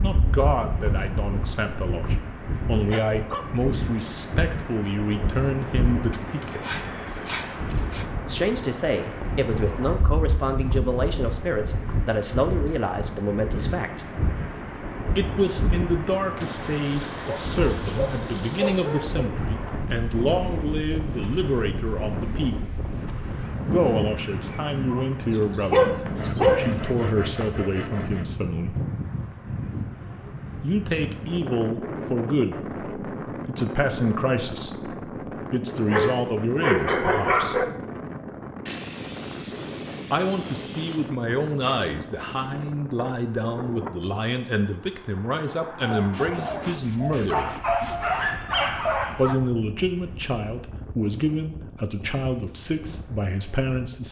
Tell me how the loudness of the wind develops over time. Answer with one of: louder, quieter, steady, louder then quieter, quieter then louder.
quieter.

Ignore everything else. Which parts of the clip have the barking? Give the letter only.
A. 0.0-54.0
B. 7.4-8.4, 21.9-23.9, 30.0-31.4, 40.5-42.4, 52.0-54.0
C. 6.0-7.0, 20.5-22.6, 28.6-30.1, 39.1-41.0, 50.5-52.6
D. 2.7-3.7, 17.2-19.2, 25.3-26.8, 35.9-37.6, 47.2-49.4
D.